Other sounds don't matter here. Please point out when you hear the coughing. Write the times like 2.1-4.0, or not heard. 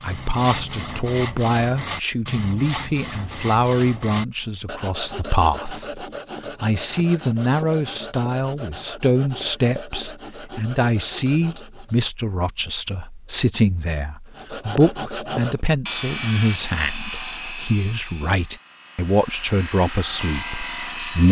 not heard.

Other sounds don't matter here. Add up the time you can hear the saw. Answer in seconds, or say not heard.
19 s.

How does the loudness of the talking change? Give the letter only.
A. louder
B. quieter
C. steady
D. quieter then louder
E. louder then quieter
C.